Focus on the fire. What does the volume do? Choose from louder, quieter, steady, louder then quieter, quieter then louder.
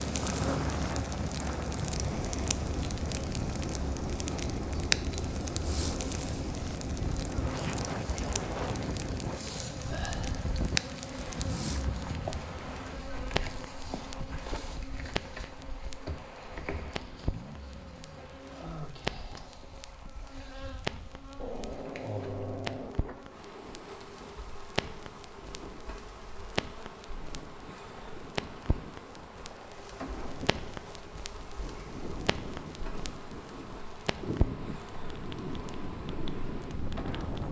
quieter.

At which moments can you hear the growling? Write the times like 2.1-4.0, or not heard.
0.1-0.6, 21.4-23.2.